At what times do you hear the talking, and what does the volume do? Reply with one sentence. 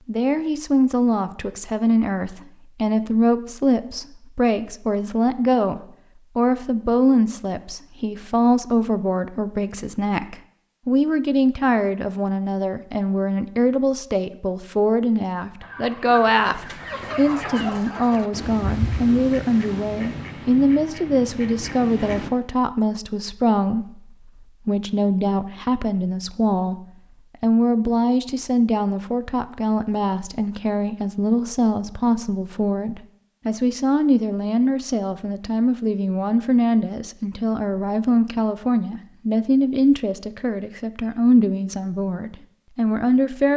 The talking can be heard from 0.1 to 43.5 s, at a steady volume.